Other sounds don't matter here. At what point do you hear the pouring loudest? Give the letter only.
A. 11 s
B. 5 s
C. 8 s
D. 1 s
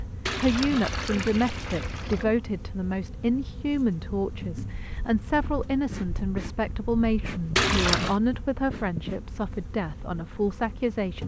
C.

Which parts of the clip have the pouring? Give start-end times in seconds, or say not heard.
0.2-2.2, 7.5-8.2.